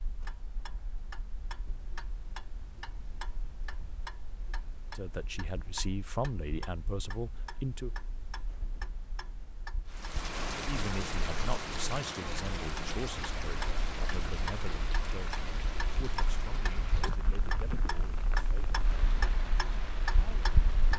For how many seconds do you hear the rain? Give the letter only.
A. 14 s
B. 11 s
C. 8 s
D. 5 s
B.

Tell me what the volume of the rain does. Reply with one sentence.
The volume of the rain goes down.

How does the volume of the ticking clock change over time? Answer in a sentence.
The loudness of the ticking clock goes up.